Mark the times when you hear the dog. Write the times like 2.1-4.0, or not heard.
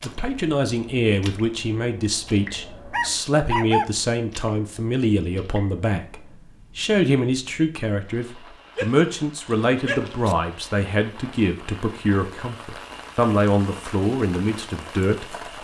2.9-3.9, 8.8-10.3.